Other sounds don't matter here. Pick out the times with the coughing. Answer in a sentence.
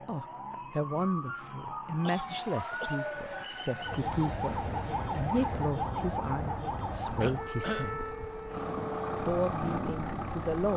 You can hear the coughing from 2.0 to 3.0 s and from 7.2 to 8.0 s.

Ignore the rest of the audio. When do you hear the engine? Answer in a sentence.
The engine can be heard from 2.2 to 10.7 s.